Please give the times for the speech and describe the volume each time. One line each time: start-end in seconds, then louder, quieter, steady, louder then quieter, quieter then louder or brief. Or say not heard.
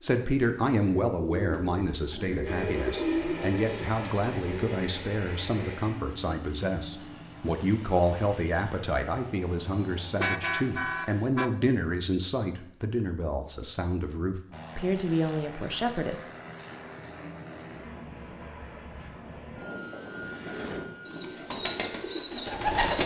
0.0-16.2 steady.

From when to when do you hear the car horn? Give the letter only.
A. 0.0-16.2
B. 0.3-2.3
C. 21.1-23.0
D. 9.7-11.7
D.